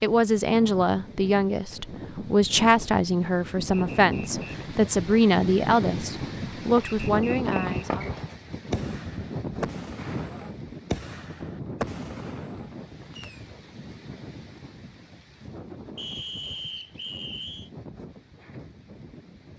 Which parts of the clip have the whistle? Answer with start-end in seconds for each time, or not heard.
3.7-4.7, 7.0-8.2, 15.9-17.7.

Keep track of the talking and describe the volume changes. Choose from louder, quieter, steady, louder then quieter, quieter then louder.
steady.